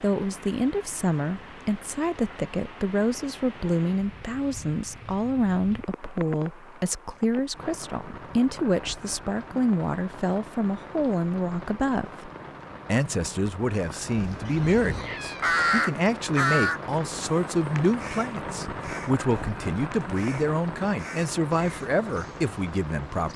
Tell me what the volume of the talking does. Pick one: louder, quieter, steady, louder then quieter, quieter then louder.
steady.